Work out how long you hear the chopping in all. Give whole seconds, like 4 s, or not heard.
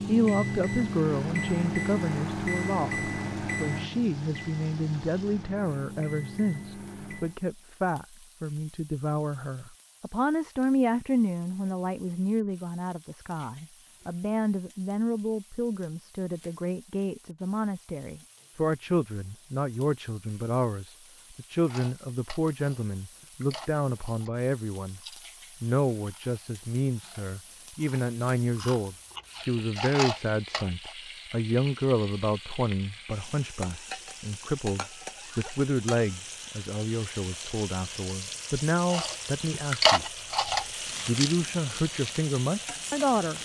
not heard.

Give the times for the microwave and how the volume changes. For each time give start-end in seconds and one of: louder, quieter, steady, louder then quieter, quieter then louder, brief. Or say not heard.
0.0-7.4 quieter.